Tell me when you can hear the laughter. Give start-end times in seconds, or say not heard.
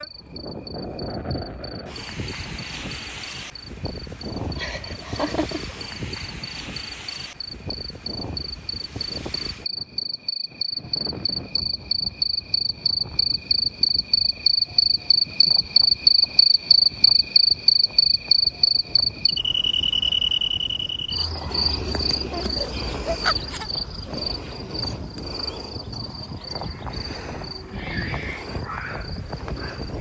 4.5-5.8, 22.3-23.7.